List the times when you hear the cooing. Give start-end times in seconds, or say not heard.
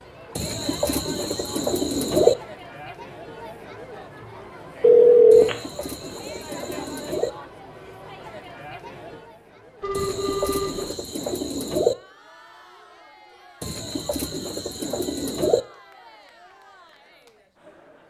0.3-2.4, 5.3-7.3, 9.9-11.9, 13.6-15.6.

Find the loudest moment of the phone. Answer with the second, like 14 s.
5 s.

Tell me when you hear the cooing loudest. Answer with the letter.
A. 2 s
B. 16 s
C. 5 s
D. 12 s
A.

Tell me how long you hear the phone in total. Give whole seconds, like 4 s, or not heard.
2 s.